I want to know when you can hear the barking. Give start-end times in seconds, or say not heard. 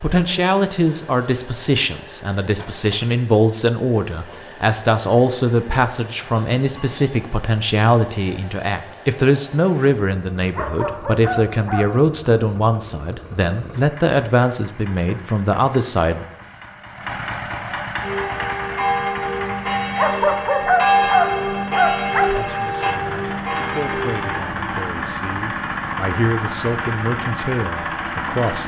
10.6-12.1, 19.9-22.4.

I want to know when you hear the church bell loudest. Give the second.
21 s.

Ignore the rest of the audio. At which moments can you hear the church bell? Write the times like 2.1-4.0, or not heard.
18.0-24.4.